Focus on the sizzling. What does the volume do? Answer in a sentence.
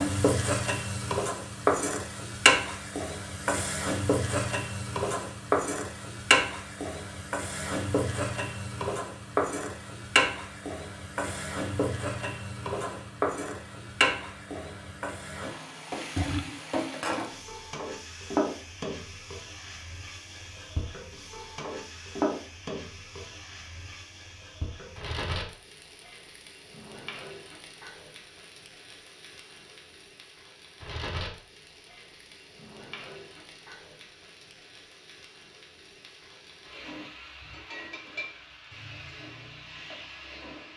The loudness of the sizzling goes down.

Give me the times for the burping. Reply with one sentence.
The burping can be heard from 15.9 to 16.6 s.